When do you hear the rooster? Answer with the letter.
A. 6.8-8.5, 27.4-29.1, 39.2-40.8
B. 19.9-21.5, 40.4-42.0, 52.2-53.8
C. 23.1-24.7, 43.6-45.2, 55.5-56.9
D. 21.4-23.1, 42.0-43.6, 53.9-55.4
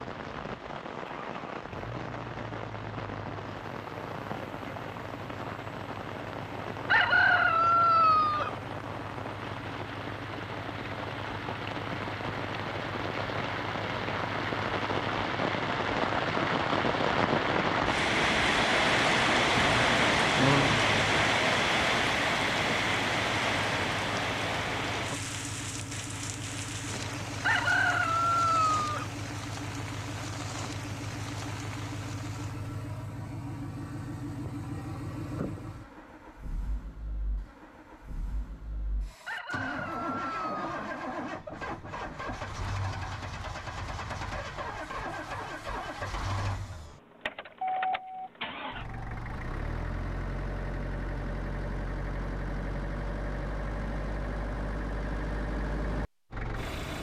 A.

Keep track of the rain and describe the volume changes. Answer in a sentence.
The loudness of the rain goes up, then down.